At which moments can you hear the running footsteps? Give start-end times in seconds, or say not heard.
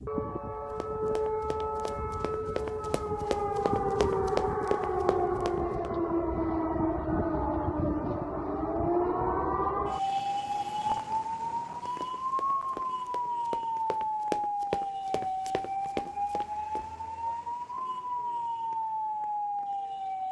0.8-5.9, 12.0-16.9.